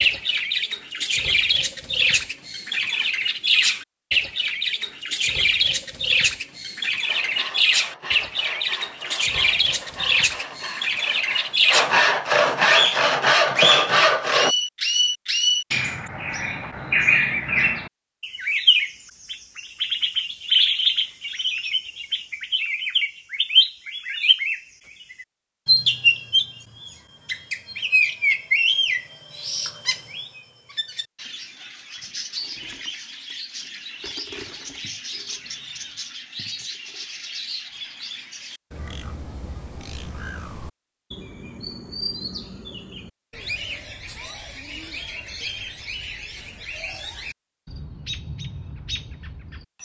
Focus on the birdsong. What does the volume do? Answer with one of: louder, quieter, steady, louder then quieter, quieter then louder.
quieter.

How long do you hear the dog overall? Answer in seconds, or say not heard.
not heard.